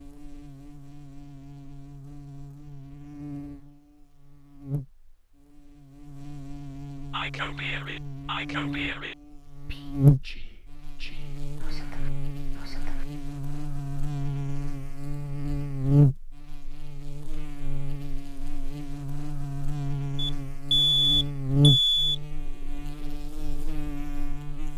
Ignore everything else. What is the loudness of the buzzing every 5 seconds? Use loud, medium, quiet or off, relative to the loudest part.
quiet, medium, loud, loud, loud.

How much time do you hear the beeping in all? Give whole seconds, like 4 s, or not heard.
2 s.